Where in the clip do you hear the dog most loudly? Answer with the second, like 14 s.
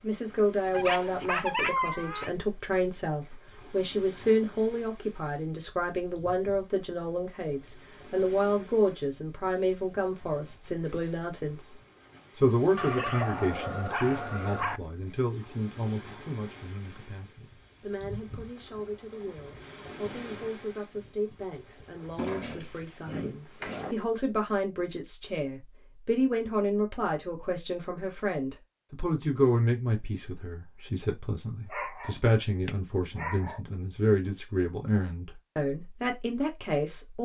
2 s.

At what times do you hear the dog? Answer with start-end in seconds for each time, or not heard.
0.7-2.3, 12.8-14.8, 22.1-23.9, 31.7-33.6.